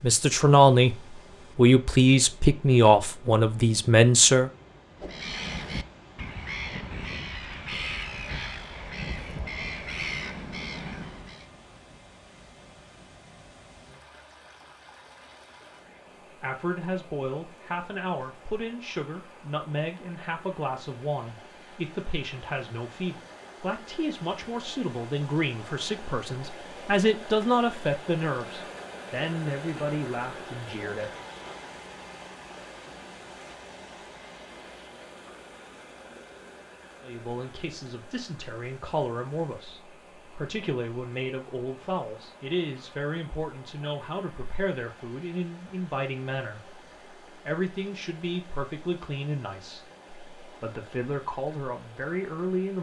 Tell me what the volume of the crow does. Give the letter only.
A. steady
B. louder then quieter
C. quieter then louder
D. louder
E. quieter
A.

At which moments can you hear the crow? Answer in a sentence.
You can hear the crow from 5.0 to 11.4 s.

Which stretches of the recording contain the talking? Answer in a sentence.
The talking can be heard from 0.0 to 0.9 s, from 1.6 to 4.5 s, from 16.4 to 31.2 s and from 37.0 to 52.7 s.